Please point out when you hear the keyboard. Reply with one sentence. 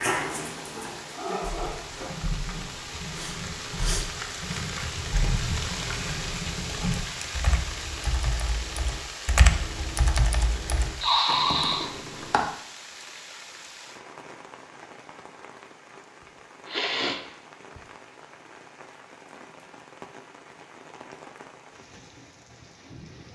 You can hear the keyboard from 1.4 to 12.4 s.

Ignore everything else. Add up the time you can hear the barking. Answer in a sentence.
The barking can be heard for 3 seconds in total.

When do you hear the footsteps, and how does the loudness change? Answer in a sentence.
The footsteps can't be heard in this clip.